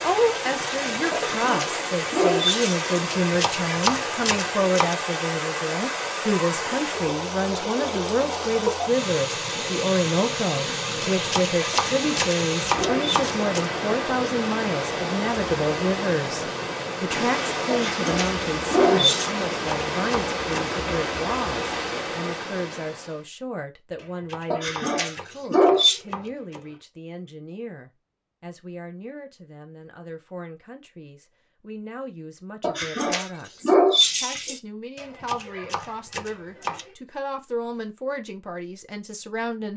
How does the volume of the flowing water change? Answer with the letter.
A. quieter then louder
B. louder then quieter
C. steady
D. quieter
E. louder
C.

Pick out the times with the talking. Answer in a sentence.
The talking can be heard from 0.0 to 39.7 s.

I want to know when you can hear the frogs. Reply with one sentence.
You can't hear the frogs here.